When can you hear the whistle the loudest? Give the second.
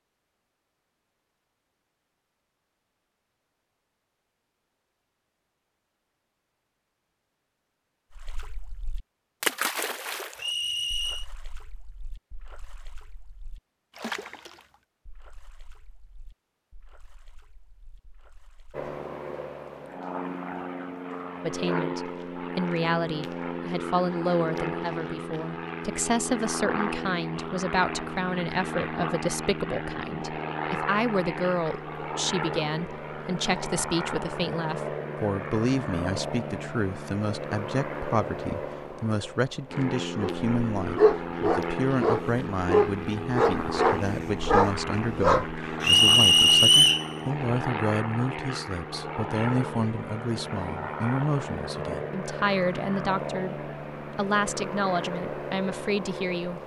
47 s.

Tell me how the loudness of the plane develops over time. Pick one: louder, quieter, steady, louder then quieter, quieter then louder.
steady.